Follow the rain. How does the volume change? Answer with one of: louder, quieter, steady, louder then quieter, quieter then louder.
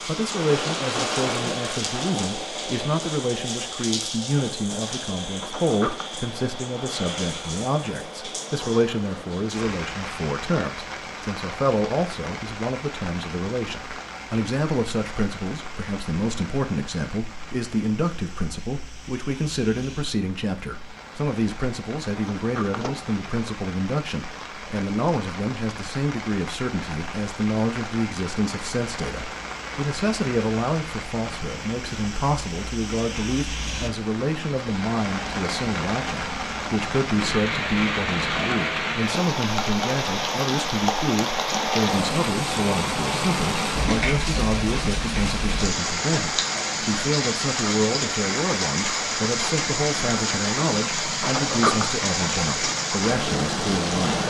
quieter then louder.